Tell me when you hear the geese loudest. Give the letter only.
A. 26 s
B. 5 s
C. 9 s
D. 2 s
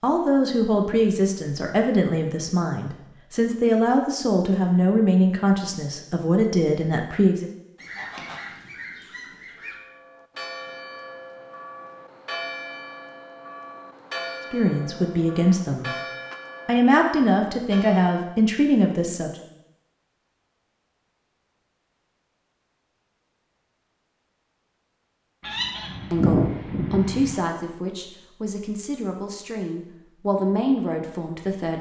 A.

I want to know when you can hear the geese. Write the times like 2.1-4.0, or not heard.
7.8-9.8, 25.4-27.4.